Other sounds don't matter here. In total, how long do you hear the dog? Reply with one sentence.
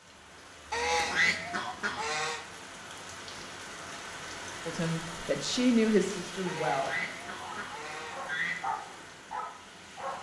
You can hear the dog for 3 seconds altogether.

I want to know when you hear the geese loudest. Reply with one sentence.
The loudest moment of the geese is at 1 second.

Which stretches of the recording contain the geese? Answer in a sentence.
You can hear the geese from 0.7 to 2.4 s and from 6.5 to 8.7 s.